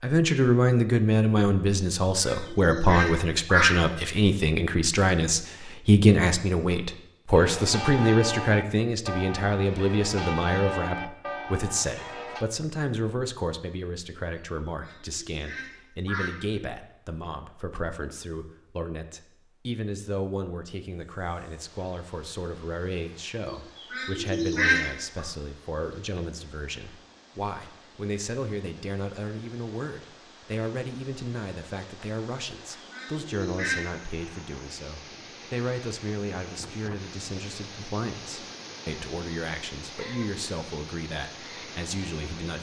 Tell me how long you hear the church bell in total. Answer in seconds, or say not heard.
5 s.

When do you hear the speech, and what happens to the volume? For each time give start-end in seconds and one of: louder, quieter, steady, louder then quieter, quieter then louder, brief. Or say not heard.
0.0-42.5 quieter.